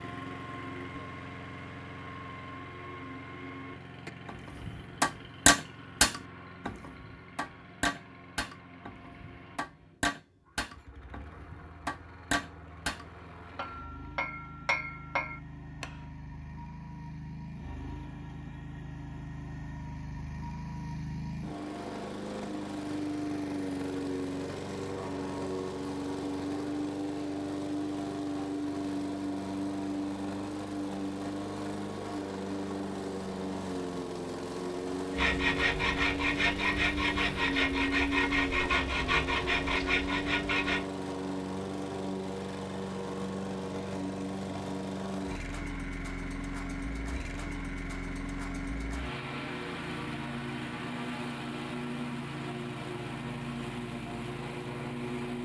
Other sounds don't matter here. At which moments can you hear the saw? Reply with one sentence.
You can hear the saw from 35.1 to 40.8 s.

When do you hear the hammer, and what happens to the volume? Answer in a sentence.
You can hear the hammer from 4.0 to 15.9 s, getting quieter.